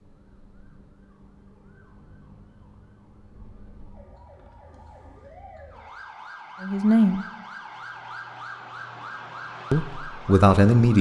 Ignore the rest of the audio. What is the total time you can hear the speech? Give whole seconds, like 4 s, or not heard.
2 s.